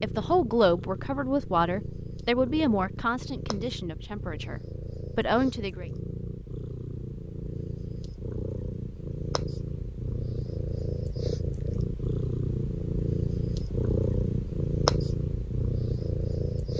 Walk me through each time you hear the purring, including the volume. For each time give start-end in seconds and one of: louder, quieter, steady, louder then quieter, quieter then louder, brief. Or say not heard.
0.0-16.7 louder.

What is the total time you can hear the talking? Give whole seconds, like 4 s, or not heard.
6 s.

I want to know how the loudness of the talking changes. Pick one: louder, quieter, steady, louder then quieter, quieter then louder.
quieter then louder.